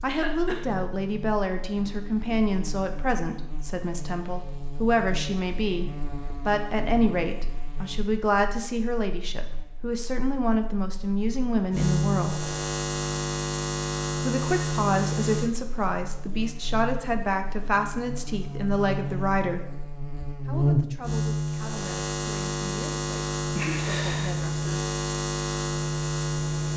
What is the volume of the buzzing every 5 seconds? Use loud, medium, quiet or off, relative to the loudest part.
quiet, quiet, loud, medium, loud, loud.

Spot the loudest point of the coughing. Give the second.
24 s.